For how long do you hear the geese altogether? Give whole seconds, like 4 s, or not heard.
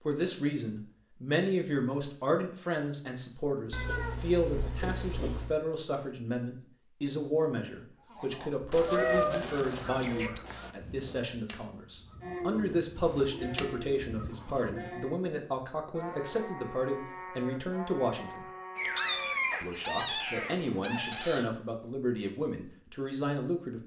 7 s.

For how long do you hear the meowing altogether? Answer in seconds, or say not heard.
6 s.